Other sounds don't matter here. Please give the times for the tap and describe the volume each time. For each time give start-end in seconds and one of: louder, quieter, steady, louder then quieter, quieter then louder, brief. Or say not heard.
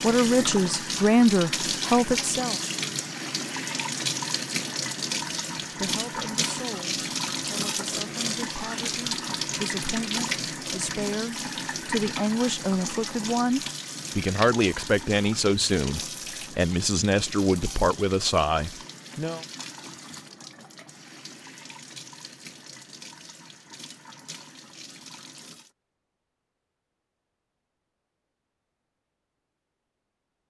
0.0-25.7 quieter.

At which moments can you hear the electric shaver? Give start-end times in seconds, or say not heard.
not heard.